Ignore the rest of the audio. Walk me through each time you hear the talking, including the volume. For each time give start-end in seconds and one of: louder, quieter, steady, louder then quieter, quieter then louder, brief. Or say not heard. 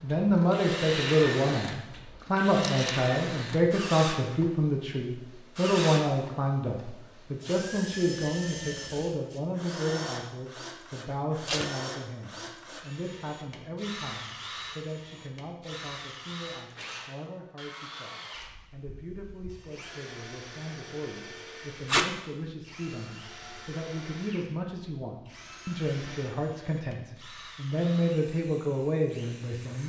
0.0-29.8 quieter then louder.